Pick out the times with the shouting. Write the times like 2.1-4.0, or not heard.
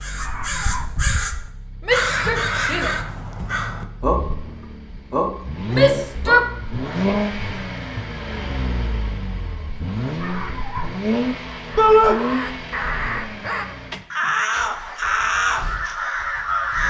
1.9-3.0, 5.7-6.5, 11.8-12.2.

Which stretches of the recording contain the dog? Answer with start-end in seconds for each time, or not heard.
0.1-0.9, 10.2-10.9.